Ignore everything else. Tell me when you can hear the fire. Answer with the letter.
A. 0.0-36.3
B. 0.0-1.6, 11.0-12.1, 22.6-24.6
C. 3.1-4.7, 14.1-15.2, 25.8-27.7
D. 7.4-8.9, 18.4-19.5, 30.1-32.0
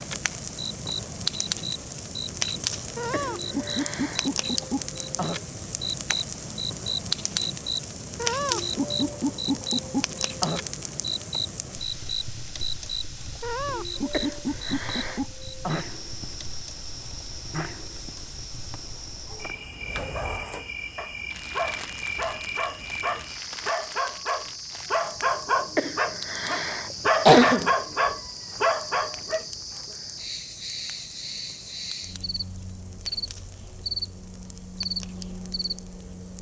A.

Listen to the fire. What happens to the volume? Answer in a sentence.
The loudness of the fire goes down.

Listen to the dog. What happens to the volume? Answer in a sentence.
The volume of the dog goes up.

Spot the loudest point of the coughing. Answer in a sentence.
The volume of the coughing peaks at 27 seconds.